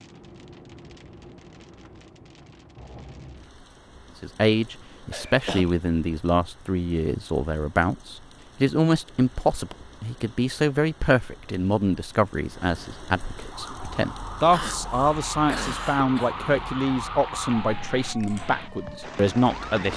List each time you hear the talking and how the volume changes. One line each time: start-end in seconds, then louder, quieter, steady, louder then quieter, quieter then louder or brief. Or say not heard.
4.2-19.9 steady.